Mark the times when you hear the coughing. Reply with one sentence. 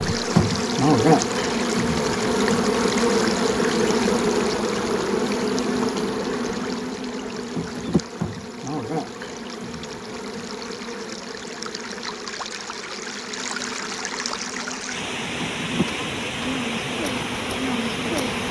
You can't hear the coughing here.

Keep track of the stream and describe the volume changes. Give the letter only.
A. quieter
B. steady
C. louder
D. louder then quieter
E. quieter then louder
E.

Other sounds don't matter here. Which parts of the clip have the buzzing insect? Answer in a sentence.
You can hear the buzzing insect from 0.0 to 18.4 s.